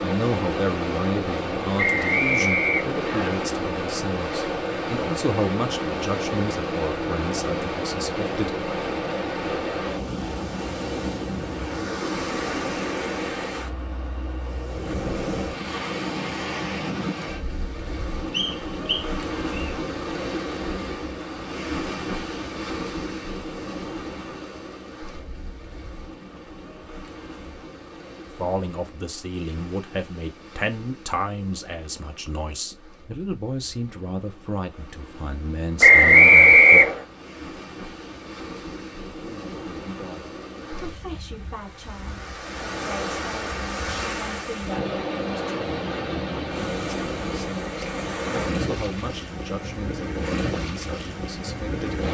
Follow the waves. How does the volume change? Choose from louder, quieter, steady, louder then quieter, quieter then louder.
quieter then louder.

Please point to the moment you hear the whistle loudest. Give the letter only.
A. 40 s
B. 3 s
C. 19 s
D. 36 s
D.